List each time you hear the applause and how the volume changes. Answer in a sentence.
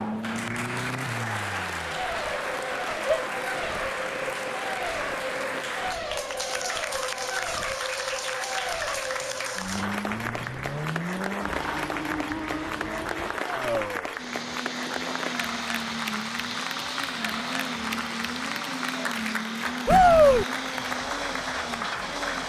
The applause can be heard from 0.0 to 22.4 s, at a steady volume.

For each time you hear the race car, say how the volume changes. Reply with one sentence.
You can hear the race car from 0.0 to 22.4 s, at a steady volume.